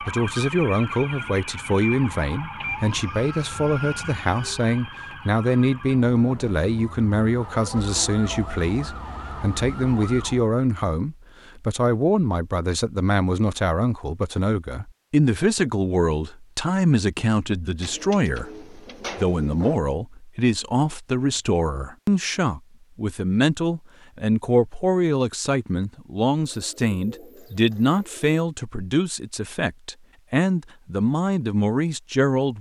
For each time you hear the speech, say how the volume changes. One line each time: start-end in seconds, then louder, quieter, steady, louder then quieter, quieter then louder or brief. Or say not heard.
0.0-32.5 steady.